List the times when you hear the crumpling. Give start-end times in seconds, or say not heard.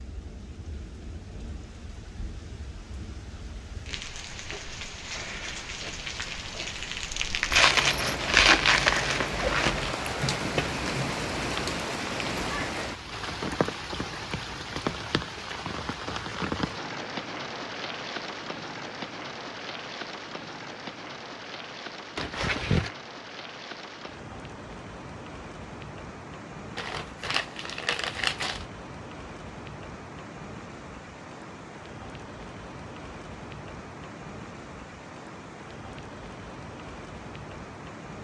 7.5-9.9, 22.1-22.9, 26.8-28.6.